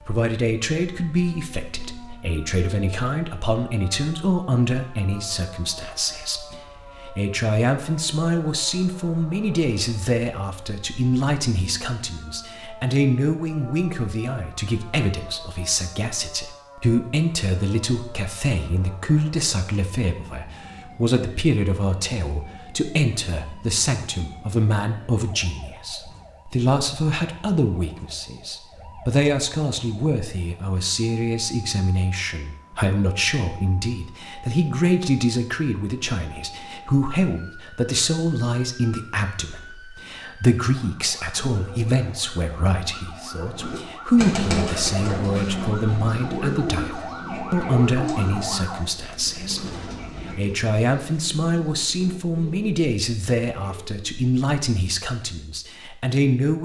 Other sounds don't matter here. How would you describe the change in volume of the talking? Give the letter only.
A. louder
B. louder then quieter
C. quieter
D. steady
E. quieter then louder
D.